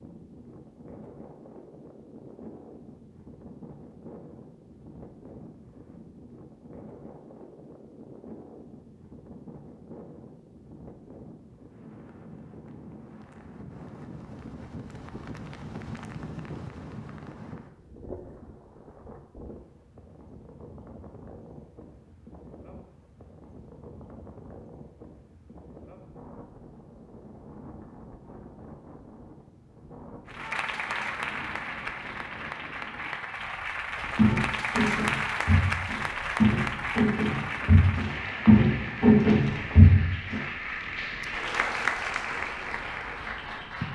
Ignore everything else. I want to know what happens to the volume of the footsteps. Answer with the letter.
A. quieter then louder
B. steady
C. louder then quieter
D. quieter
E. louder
E.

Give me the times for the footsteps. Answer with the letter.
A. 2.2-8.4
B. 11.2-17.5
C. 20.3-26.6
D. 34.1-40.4
D.